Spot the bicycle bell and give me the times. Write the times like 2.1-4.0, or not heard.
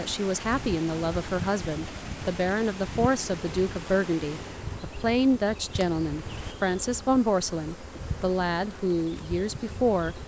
not heard.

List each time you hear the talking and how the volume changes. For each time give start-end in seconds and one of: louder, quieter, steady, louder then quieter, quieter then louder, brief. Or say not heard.
0.0-10.2 steady.